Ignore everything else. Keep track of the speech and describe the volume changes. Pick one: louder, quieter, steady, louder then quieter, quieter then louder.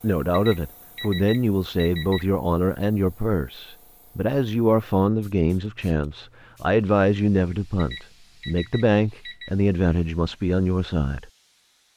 steady.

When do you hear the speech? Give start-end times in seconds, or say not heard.
0.0-11.3.